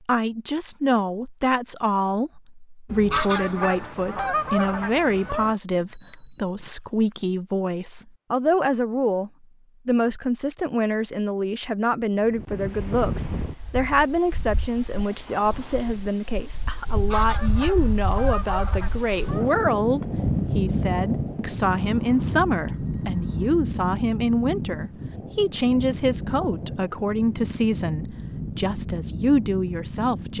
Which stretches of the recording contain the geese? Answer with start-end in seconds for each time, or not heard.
2.9-5.5, 16.9-19.7.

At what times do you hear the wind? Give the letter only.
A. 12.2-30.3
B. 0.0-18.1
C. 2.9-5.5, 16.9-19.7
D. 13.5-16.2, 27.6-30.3
A.